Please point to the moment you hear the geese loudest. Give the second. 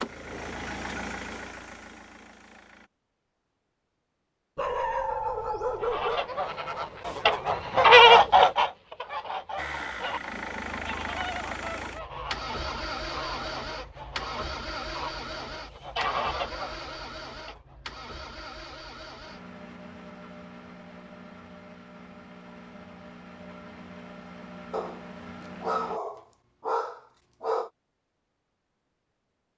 8 s.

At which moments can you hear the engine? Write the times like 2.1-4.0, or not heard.
0.0-2.9, 9.6-26.0.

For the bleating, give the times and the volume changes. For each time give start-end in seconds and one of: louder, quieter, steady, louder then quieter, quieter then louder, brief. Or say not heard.
not heard.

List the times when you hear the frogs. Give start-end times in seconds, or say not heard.
not heard.